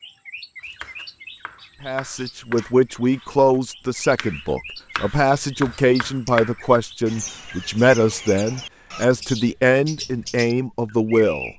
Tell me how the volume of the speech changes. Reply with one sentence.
The volume of the speech stays about the same.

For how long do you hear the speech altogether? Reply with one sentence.
The speech can be heard for 10 seconds in total.